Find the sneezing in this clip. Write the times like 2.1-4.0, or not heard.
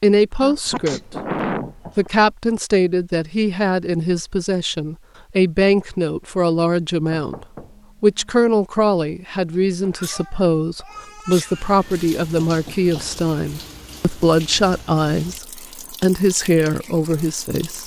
0.4-1.8, 9.8-12.1.